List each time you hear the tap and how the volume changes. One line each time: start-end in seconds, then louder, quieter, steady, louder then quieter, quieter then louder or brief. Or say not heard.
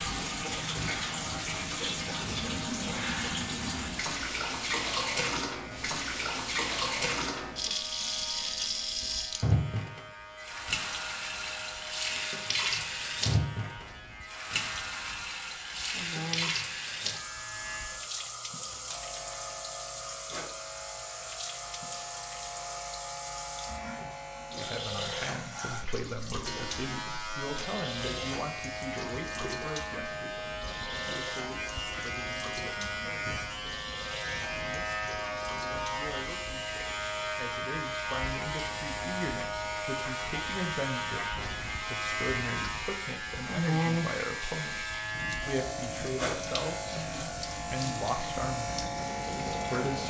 0.0-50.0 quieter.